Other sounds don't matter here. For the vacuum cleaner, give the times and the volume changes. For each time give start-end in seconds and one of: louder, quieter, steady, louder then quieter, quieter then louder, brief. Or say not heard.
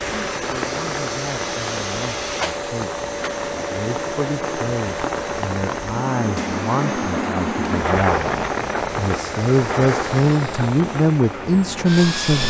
0.0-12.4 quieter.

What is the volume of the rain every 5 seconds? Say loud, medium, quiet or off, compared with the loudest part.
medium, loud, medium.